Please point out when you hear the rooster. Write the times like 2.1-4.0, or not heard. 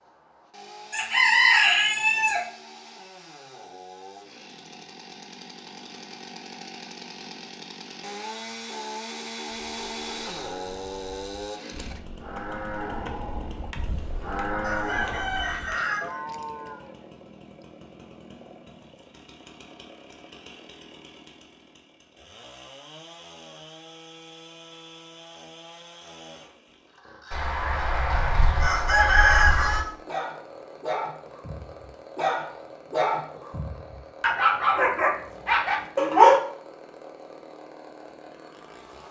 0.9-2.4, 14.6-16.0, 27.3-29.9.